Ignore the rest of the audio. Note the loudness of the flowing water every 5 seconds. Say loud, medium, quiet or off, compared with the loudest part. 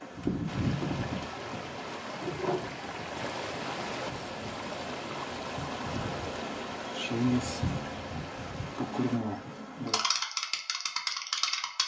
loud, loud, off.